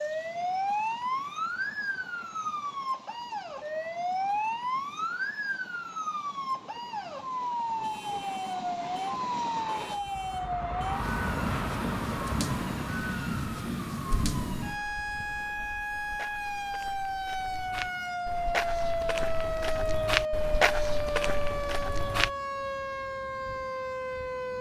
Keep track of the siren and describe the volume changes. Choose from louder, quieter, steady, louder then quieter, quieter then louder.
steady.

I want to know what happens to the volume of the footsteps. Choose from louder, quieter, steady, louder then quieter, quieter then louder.
louder.